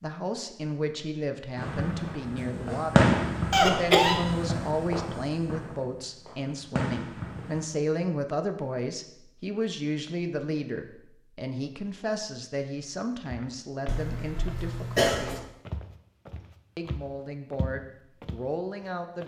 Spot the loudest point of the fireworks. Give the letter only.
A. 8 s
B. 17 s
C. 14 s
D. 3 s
D.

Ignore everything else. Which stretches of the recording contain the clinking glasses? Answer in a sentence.
You can't hear the clinking glasses here.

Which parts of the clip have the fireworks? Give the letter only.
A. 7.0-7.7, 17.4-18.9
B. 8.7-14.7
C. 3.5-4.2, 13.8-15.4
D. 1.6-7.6
D.